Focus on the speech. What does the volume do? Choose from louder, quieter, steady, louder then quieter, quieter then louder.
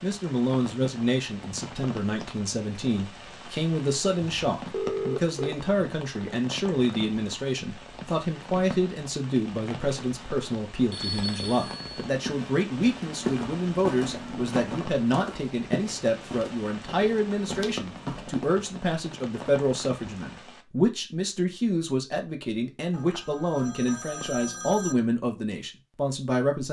steady.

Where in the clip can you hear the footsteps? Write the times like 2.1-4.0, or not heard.
11.9-18.5.